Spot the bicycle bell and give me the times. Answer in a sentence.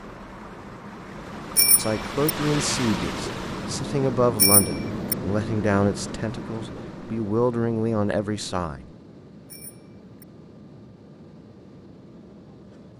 The bicycle bell can be heard from 1.6 to 2.3 s, from 4.3 to 5.2 s and from 9.5 to 10.2 s.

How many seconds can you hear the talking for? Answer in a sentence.
The talking can be heard for 7 seconds in total.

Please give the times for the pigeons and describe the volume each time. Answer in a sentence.
The pigeons can't be heard in this clip.